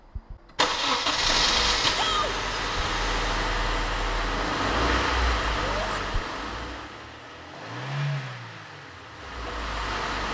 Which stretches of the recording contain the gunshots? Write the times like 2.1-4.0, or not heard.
not heard.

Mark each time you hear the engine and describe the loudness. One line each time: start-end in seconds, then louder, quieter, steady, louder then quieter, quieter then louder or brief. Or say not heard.
0.1-10.2 quieter.